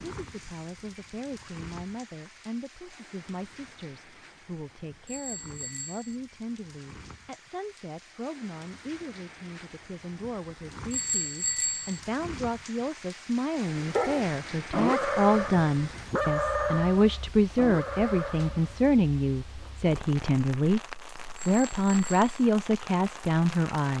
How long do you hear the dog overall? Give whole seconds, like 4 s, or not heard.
5 s.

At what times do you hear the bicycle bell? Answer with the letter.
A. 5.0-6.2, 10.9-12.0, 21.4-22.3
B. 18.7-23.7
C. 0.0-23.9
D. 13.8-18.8
A.